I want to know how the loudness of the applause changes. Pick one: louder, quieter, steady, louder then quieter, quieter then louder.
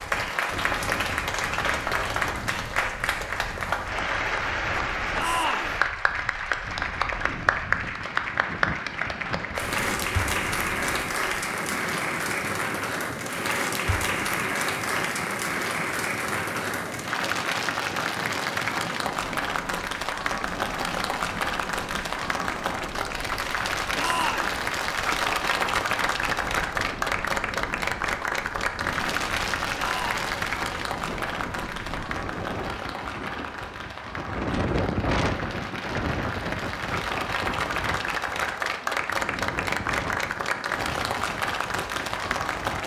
steady.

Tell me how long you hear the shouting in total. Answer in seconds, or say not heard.
2 s.